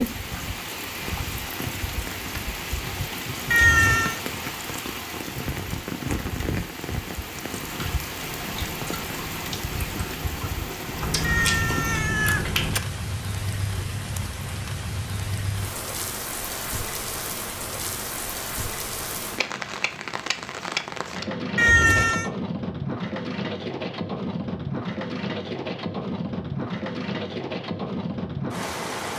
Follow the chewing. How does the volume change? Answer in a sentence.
The loudness of the chewing goes up.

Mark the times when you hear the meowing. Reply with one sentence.
The meowing can be heard from 3.5 to 4.2 s, from 11.2 to 12.8 s and from 21.6 to 22.3 s.